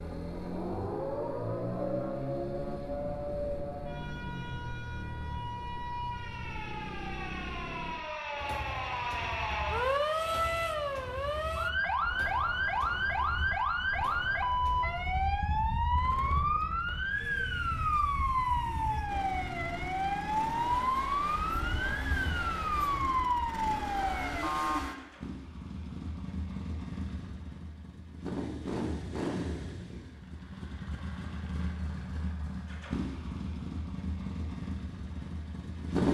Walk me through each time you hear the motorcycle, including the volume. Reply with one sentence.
You can hear the motorcycle from 0.0 to 36.1 s, getting quieter then louder.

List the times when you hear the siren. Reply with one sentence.
You can hear the siren from 0.0 to 24.9 s.